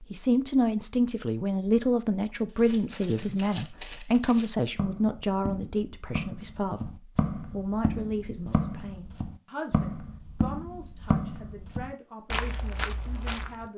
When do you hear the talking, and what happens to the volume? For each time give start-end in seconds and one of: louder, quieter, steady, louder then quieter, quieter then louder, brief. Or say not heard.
0.0-13.7 quieter.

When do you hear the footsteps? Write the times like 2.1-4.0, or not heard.
2.5-13.7.